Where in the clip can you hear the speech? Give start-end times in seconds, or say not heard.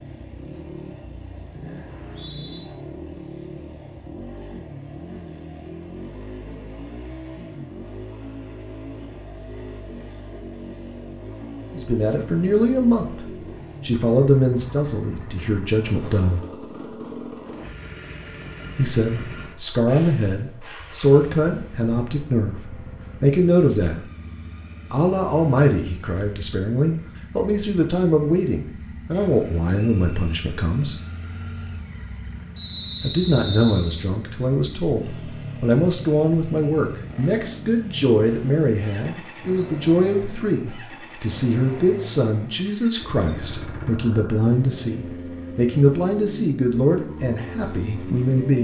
11.7-16.4, 18.8-24.1, 24.9-31.0, 33.0-48.5.